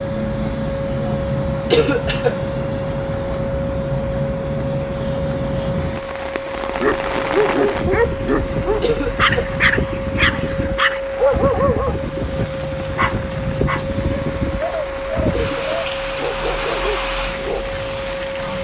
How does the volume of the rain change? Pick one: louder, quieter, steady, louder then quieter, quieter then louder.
steady.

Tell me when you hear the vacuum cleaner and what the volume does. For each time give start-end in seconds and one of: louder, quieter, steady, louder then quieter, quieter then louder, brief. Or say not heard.
0.0-18.5 steady.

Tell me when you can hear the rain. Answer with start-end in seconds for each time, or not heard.
0.0-18.5.